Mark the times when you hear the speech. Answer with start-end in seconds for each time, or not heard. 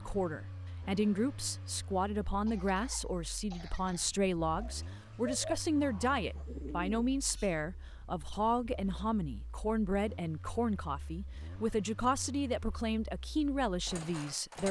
0.0-14.6.